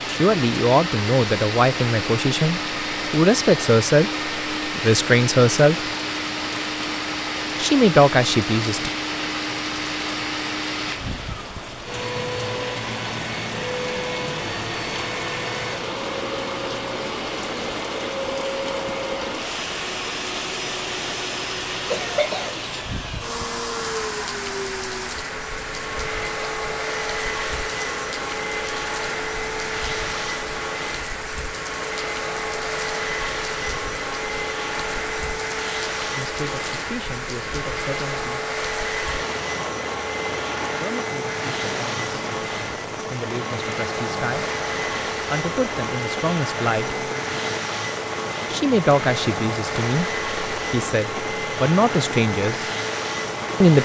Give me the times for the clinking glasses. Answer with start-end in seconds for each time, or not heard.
not heard.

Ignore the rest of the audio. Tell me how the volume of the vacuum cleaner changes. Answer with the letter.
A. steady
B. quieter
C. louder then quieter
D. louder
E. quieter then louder
A.